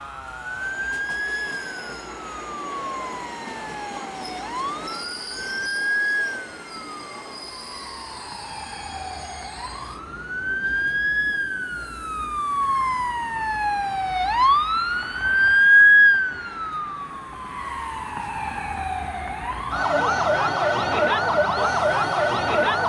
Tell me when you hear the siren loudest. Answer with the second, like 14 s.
16 s.